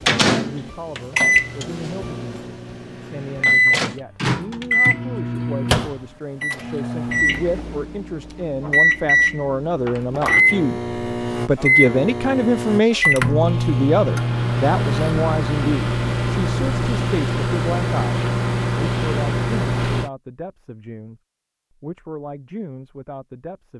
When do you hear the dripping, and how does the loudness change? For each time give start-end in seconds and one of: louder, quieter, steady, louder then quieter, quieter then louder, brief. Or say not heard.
not heard.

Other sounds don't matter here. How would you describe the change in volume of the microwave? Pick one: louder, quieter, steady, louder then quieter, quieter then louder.
steady.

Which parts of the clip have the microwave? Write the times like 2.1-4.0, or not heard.
0.0-20.1.